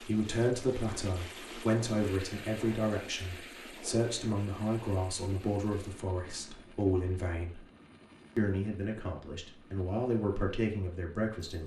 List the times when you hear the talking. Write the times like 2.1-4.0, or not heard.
0.0-7.6, 8.3-11.6.